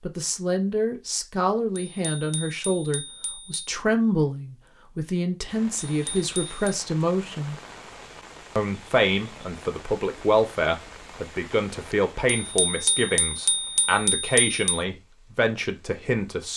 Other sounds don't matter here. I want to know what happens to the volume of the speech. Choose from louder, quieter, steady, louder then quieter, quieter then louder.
steady.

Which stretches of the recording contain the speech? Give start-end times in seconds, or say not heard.
0.0-7.5, 8.6-16.5.